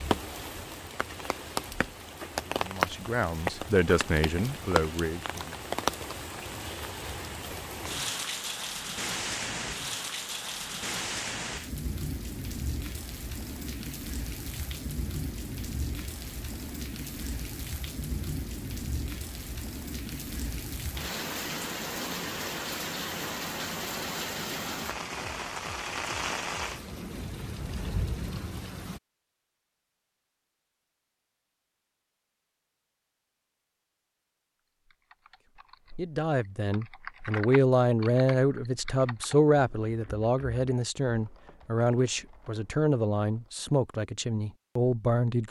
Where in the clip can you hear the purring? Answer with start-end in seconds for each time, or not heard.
not heard.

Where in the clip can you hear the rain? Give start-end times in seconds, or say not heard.
0.0-29.0.